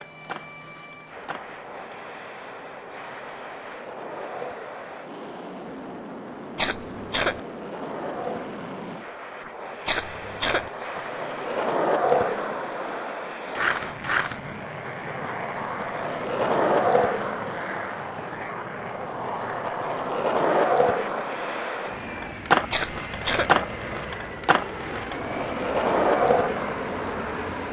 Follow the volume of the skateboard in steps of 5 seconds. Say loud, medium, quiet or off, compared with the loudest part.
quiet, quiet, loud, loud, loud, loud.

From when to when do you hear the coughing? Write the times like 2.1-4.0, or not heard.
6.5-7.4, 9.8-10.7, 22.7-23.6.